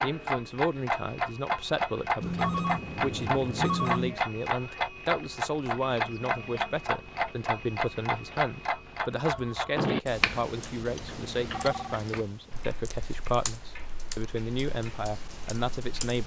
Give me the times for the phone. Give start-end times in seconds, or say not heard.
2.2-4.2, 10.9-12.0.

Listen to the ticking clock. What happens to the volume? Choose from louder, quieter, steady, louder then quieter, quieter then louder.
quieter.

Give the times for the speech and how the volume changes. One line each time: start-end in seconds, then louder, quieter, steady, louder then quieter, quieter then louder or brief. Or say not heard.
0.0-16.2 steady.